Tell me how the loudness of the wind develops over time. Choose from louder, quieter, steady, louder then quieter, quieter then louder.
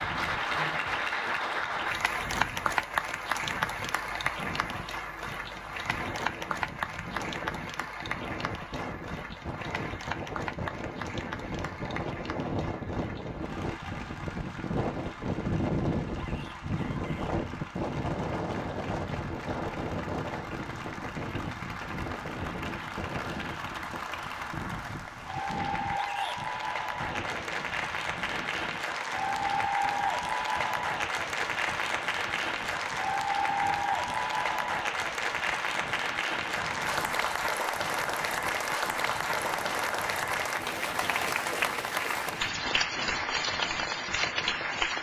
louder then quieter.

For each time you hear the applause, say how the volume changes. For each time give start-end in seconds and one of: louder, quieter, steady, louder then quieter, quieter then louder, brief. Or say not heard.
0.0-44.9 quieter then louder.